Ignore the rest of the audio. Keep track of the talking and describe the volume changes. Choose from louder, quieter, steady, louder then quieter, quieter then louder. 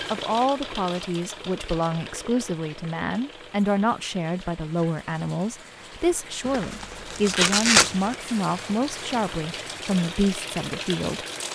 steady.